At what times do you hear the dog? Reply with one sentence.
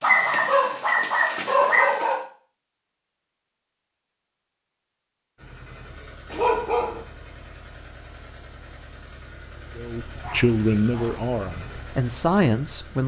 The dog can be heard from 0.0 to 2.2 s, from 6.3 to 7.0 s and from 10.2 to 11.2 s.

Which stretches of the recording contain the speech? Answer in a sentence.
You can hear the speech from 9.8 to 13.0 s.